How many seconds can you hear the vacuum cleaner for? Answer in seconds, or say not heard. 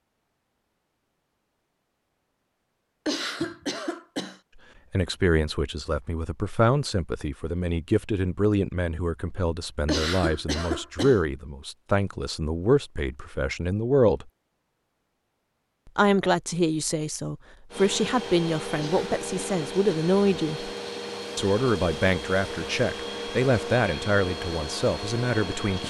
8 s.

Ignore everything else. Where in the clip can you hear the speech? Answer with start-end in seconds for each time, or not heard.
4.9-14.2, 15.9-20.7, 21.4-25.8.